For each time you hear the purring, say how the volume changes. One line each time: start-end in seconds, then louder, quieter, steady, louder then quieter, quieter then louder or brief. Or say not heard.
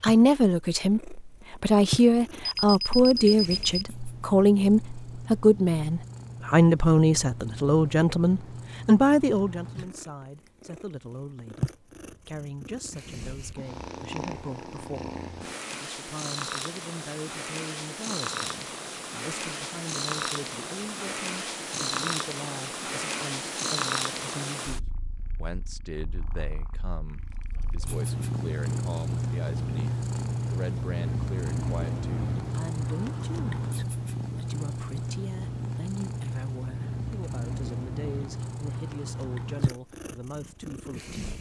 0.0-41.3 louder.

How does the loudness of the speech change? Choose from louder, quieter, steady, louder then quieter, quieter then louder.
quieter.